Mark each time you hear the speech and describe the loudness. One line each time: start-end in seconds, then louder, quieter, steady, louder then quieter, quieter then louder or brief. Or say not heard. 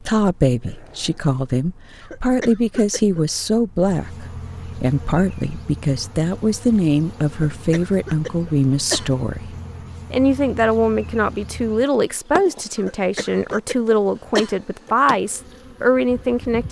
0.0-16.6 steady.